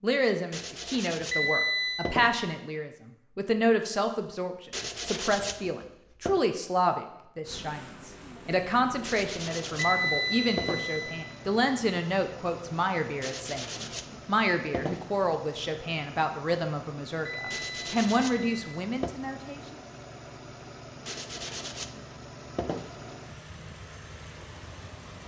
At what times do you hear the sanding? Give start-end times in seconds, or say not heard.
0.5-2.5, 4.7-6.4, 9.1-11.1, 13.2-15.1, 17.5-19.1, 21.1-23.1.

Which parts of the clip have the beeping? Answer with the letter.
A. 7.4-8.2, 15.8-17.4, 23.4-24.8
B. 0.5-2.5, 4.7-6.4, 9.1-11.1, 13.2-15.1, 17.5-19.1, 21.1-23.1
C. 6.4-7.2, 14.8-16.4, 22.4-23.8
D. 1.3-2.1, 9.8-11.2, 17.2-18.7
D.